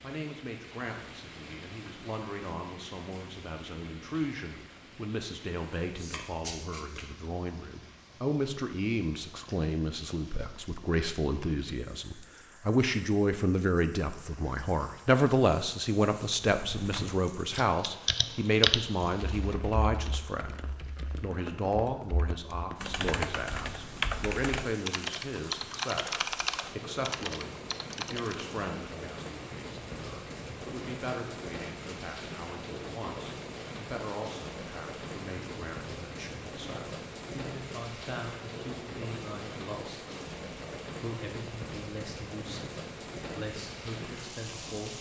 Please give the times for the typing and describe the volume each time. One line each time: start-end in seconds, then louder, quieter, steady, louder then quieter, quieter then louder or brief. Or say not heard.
16.5-28.5 quieter then louder.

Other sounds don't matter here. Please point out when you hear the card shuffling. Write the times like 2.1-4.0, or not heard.
6.0-7.0.